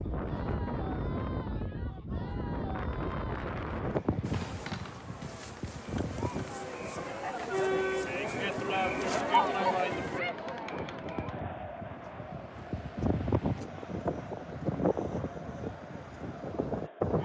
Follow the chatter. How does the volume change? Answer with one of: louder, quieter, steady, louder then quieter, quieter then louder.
louder then quieter.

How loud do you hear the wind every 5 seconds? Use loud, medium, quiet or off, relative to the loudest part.
loud, medium, loud, loud.